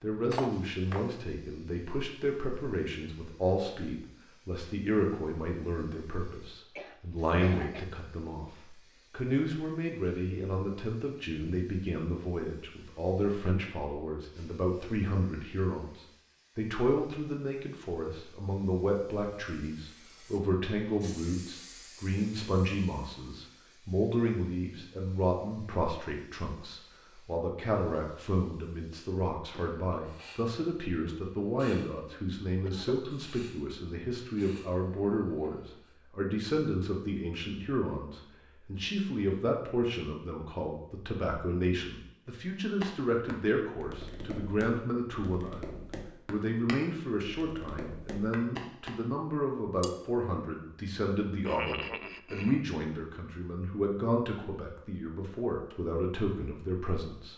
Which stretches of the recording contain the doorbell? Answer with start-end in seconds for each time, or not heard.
not heard.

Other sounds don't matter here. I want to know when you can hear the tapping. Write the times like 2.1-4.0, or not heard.
42.8-49.0.